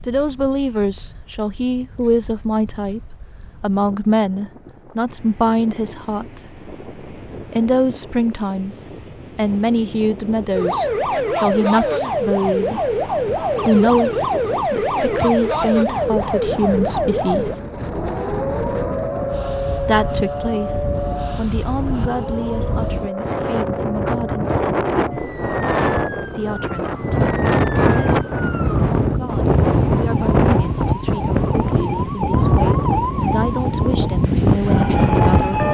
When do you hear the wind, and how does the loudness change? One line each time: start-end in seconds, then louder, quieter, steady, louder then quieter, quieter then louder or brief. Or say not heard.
0.0-35.6 louder.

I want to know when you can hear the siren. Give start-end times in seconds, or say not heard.
10.6-35.6.